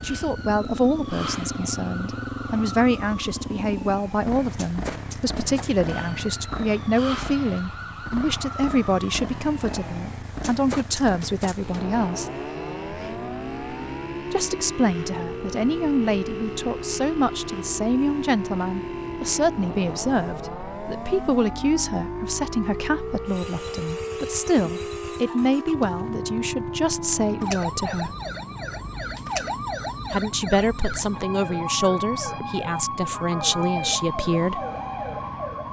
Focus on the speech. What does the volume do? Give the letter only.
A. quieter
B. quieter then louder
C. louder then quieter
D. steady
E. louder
D.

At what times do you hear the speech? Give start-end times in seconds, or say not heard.
0.0-12.3, 14.3-28.1, 30.1-34.6.